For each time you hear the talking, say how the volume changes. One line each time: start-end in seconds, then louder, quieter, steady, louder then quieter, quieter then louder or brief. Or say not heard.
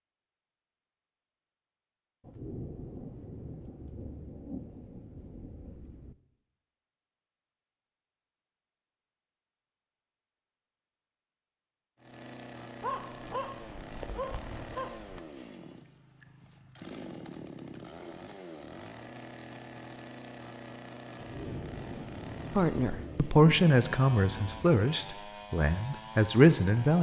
22.6-26.9 quieter then louder.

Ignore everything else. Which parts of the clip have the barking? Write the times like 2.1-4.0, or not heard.
12.8-15.2.